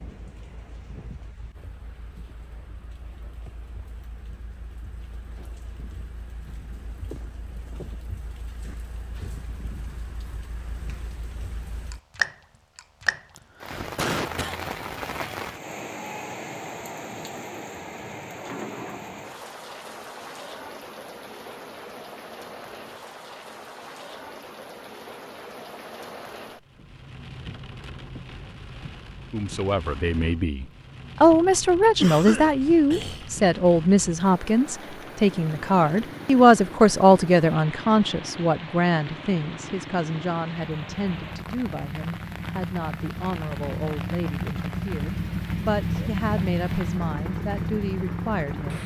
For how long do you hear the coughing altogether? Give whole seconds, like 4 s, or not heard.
3 s.